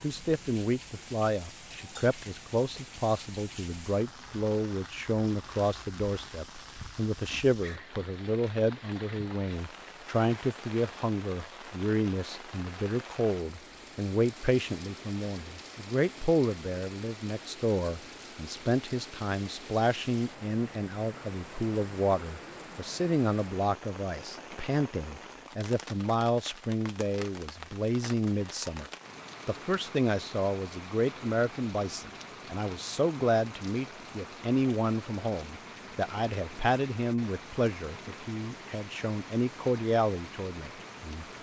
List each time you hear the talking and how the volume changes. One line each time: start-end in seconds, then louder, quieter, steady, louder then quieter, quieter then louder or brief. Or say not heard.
0.0-28.9 steady
29.4-41.2 steady.